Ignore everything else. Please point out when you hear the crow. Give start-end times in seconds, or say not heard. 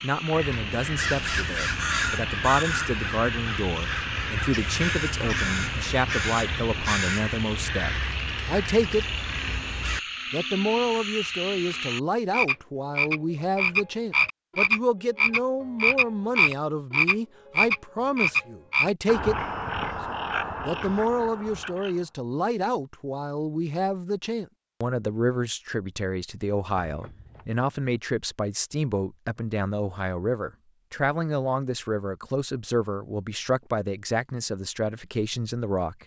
0.3-10.0.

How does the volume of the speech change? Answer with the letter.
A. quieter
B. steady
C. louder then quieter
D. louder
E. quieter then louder
B.